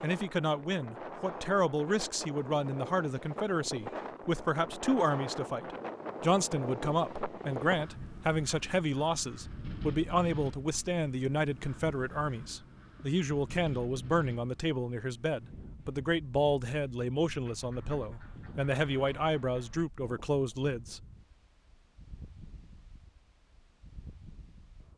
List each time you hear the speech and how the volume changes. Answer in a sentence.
The speech can be heard from 0.0 to 21.0 s, at a steady volume.